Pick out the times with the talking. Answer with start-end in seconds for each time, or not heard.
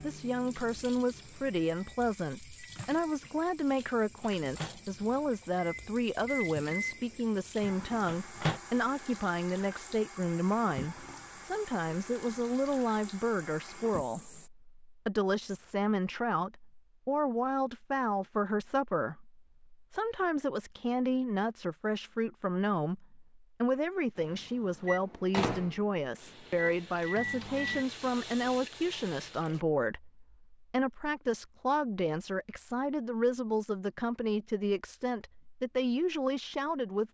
0.0-37.0.